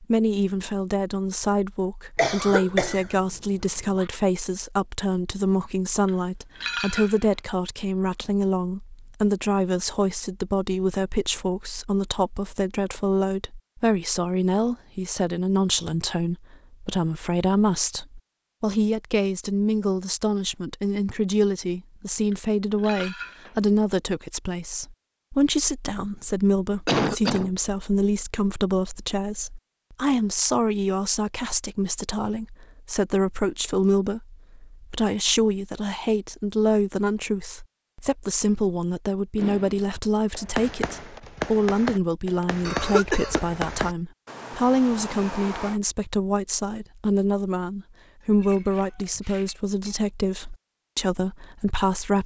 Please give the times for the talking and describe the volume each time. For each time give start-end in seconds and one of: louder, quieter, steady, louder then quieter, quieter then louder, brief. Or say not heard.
0.0-52.2 steady.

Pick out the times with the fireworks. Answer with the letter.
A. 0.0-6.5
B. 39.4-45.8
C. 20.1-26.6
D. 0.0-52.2
B.